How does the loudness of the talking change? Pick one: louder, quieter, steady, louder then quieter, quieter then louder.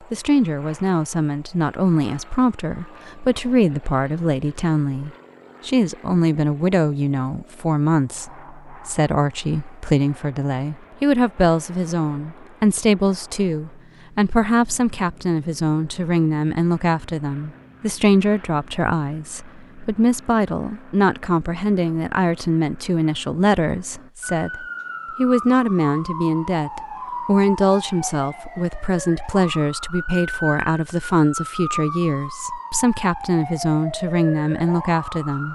steady.